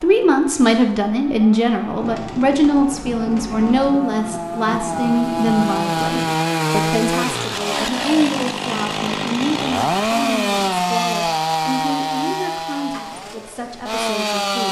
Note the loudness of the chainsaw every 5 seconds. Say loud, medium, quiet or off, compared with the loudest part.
medium, loud, loud.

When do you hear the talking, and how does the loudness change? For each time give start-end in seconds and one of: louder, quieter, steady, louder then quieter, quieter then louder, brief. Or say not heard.
0.0-14.6 quieter.